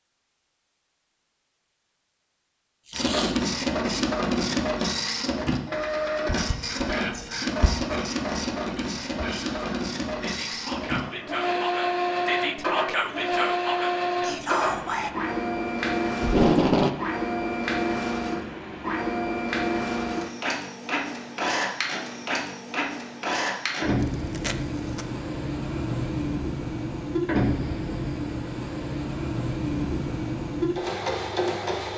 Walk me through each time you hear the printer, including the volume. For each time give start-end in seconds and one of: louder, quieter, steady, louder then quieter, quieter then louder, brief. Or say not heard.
2.9-31.9 steady.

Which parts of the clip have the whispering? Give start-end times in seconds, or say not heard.
6.2-15.1.